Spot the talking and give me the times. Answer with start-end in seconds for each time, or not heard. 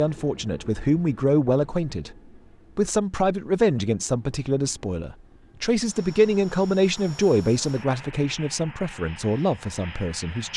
0.0-2.1, 2.8-10.5.